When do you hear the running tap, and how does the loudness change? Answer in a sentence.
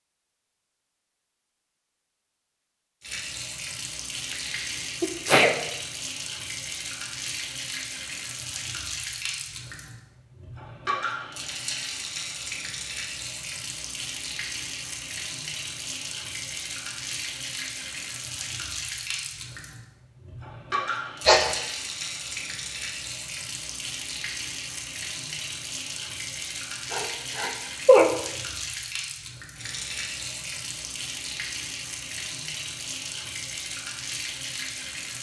You can hear the running tap from 3.0 to 35.1 s, at a steady volume.